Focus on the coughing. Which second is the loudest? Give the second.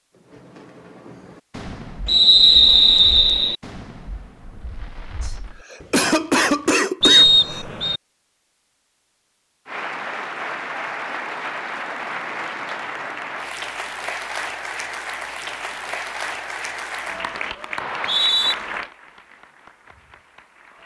6 s.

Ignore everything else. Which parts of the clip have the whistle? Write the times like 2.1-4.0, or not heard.
2.0-3.5, 7.0-8.0, 17.8-18.6.